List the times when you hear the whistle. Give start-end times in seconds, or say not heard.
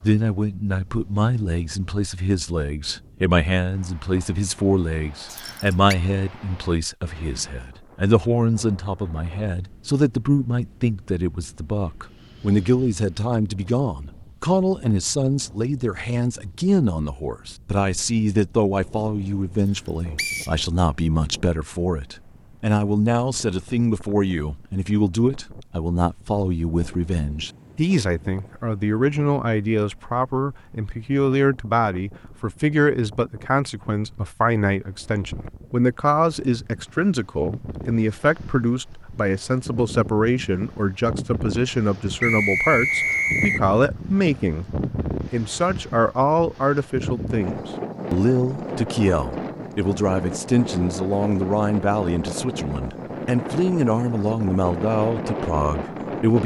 5.2-6.0, 20.1-20.6, 42.2-43.6.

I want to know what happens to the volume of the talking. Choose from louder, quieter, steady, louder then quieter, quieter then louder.
steady.